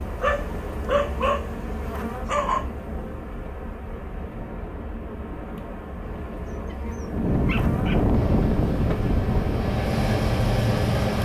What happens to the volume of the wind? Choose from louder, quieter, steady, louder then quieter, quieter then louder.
louder.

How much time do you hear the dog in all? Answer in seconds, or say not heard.
4 s.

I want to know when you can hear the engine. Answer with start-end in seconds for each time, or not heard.
8.1-11.2.